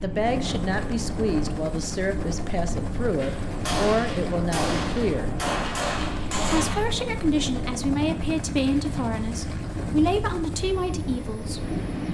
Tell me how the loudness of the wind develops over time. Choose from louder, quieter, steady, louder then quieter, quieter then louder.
steady.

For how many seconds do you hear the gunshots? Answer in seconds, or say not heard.
4 s.